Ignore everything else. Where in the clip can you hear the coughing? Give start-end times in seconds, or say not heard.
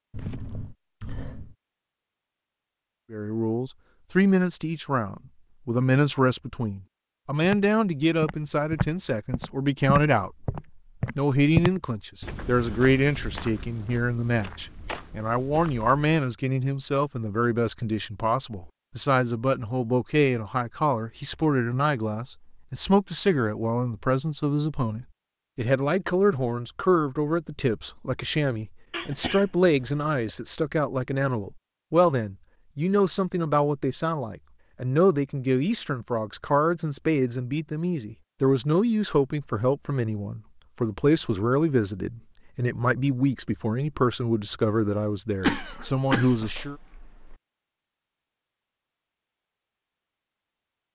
0.1-1.6, 28.9-30.1, 45.4-47.4.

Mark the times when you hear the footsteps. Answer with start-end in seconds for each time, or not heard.
7.4-16.1.